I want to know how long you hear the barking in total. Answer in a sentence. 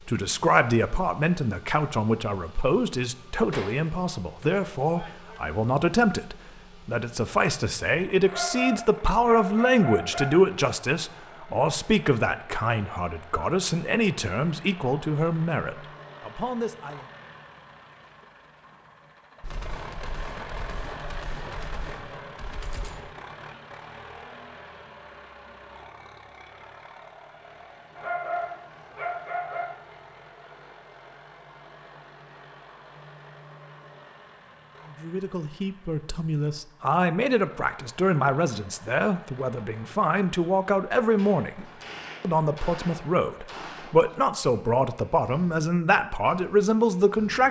The barking can be heard for 4 seconds in total.